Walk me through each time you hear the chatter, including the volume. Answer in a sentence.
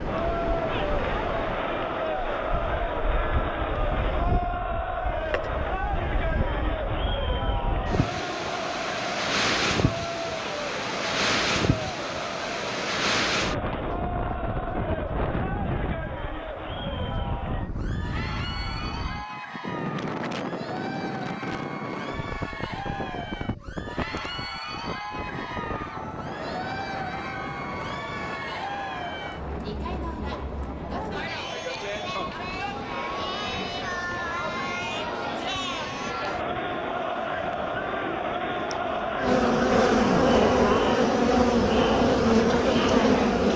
You can hear the chatter from 0.0 to 43.5 s, getting quieter then louder.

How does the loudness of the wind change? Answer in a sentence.
The volume of the wind goes up, then down.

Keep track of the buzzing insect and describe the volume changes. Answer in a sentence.
The volume of the buzzing insect goes up.